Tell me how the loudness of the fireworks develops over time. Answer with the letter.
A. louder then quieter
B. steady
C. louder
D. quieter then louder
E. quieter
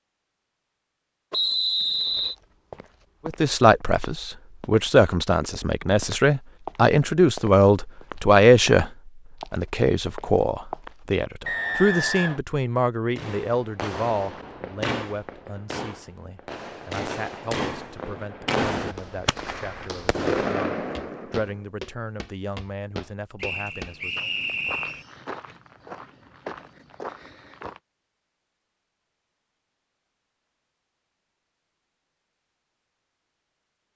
D.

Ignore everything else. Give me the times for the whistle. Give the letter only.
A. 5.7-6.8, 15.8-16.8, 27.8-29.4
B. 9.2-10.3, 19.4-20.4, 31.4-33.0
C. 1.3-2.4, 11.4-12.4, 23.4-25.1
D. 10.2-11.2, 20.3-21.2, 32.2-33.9
C.